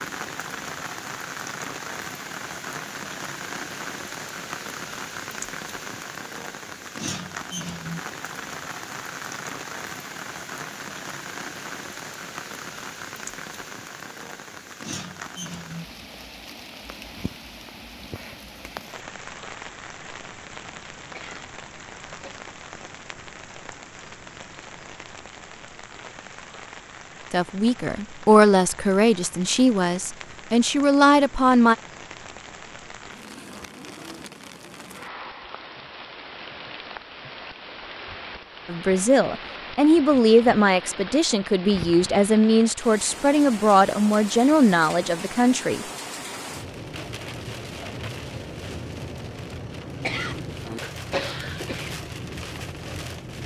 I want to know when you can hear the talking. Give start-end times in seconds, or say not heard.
27.3-31.8, 38.6-45.9.